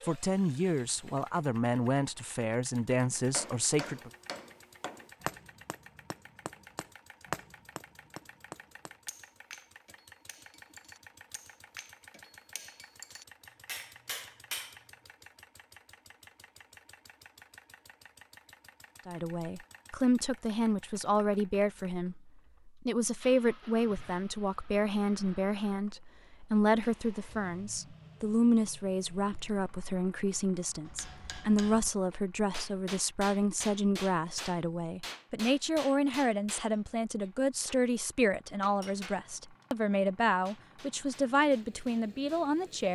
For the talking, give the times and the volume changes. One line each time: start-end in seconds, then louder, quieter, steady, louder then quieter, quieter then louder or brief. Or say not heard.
0.0-4.1 steady
19.1-42.9 steady.